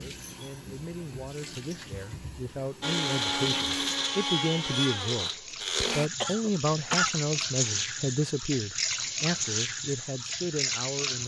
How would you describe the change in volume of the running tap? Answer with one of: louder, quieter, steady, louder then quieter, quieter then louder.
louder.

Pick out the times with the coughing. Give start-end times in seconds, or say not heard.
6.2-7.2.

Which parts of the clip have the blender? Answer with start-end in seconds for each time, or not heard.
2.8-6.1.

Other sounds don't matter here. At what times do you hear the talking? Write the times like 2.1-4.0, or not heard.
0.0-5.3, 5.9-11.2.